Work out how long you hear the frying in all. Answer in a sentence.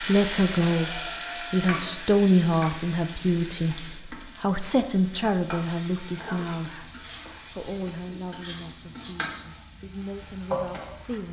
The frying can be heard for 11 seconds in total.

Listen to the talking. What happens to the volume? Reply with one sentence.
The volume of the talking goes down.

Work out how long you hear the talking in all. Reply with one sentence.
The talking can be heard for 11 seconds in total.